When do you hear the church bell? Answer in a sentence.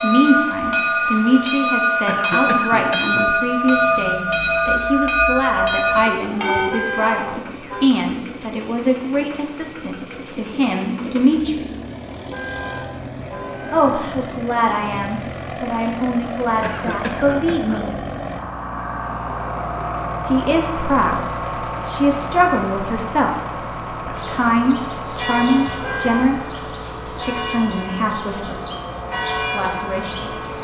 The church bell can be heard from 0.0 to 6.7 s and from 24.1 to 30.5 s.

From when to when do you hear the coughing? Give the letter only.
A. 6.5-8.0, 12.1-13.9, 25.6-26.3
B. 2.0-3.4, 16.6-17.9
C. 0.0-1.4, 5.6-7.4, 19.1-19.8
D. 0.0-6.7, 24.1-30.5
B.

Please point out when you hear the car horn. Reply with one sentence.
You can hear the car horn from 6.5 to 8.0 s, from 12.1 to 13.9 s and from 25.6 to 26.3 s.